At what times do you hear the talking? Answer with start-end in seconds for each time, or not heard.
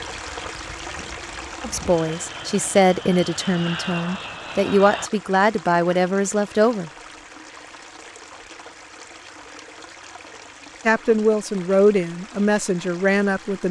1.6-6.9, 10.8-13.6.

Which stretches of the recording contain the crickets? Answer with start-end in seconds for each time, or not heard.
not heard.